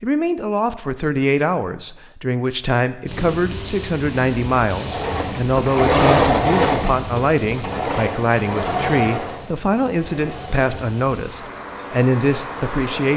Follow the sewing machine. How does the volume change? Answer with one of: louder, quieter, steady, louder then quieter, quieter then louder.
quieter.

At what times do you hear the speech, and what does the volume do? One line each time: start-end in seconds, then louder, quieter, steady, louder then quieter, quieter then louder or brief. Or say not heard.
0.0-13.1 steady.